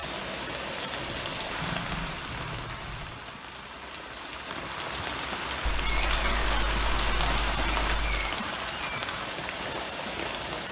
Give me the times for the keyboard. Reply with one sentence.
You can hear the keyboard from 1.1 to 3.1 s and from 5.7 to 8.2 s.